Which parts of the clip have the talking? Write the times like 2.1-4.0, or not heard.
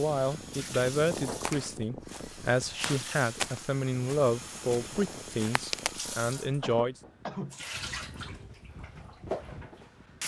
0.0-7.0.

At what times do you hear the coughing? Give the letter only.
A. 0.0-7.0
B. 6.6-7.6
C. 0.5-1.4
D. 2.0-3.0
B.